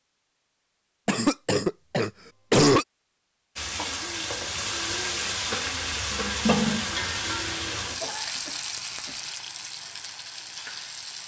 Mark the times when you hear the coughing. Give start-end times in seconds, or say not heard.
1.1-2.9, 8.0-9.2.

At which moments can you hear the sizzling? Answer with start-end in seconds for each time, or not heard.
3.5-11.2.